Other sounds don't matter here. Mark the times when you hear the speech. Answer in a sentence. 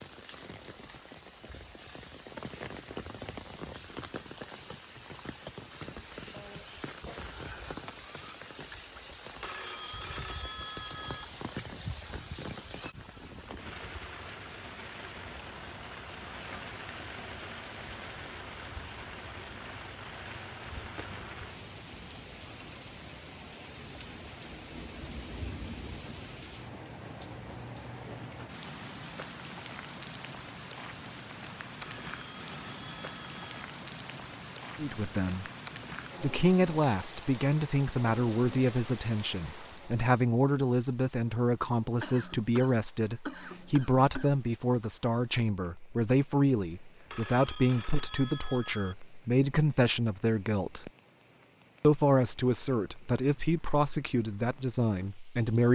You can hear the speech from 34.8 to 35.5 s, from 36.2 to 50.9 s and from 51.8 to 55.7 s.